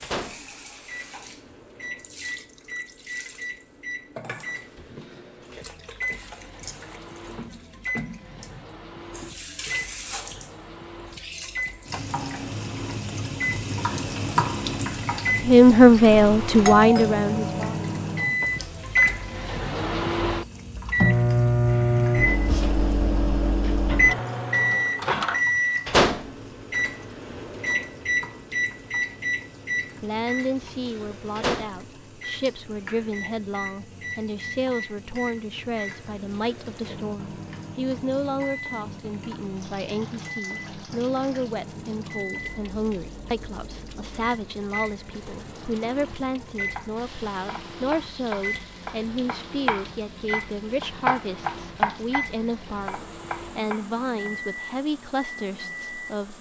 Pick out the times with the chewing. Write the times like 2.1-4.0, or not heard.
not heard.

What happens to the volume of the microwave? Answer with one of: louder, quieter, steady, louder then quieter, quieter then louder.
louder then quieter.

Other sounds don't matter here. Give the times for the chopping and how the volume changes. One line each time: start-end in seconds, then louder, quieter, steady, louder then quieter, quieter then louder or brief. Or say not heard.
46.7-54.3 louder then quieter.